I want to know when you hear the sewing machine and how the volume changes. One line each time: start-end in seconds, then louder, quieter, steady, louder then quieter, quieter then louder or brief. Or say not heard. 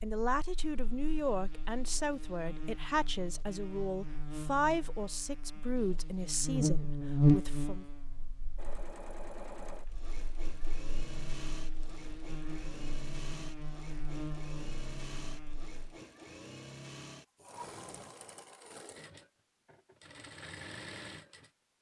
8.6-21.5 steady.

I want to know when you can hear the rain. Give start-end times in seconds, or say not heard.
not heard.